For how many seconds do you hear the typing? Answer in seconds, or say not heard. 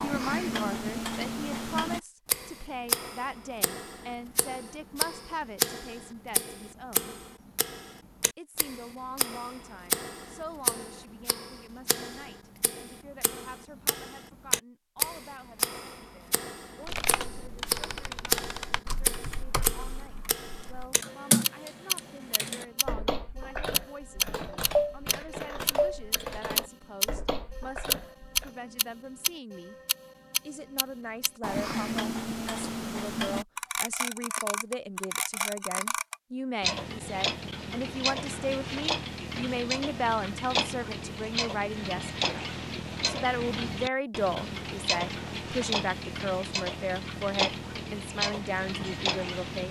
12 s.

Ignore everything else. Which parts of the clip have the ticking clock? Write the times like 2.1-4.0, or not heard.
0.0-49.6.